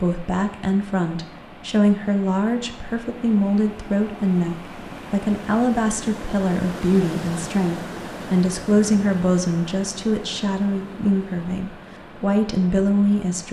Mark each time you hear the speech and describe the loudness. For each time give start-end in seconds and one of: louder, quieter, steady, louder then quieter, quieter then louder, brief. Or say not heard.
0.0-13.4 steady.